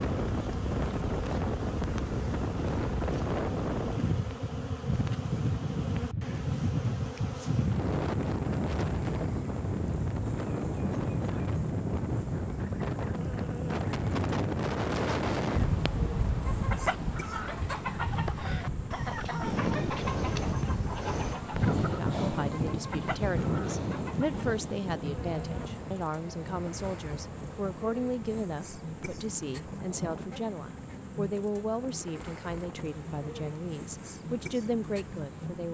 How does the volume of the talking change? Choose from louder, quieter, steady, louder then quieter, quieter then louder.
steady.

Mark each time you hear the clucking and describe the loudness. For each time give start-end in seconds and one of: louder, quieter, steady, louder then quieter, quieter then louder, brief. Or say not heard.
16.4-24.4 quieter.